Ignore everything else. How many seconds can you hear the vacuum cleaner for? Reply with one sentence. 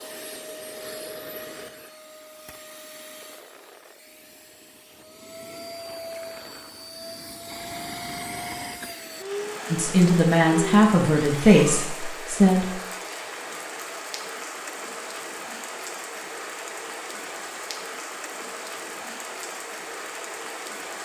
You can hear the vacuum cleaner for 12 seconds altogether.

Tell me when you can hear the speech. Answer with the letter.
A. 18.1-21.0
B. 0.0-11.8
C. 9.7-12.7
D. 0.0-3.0
C.